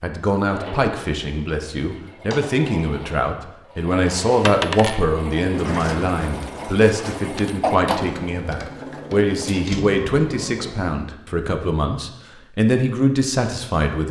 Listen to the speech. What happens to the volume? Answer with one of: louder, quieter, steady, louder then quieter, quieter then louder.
steady.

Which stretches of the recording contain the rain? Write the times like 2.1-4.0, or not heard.
not heard.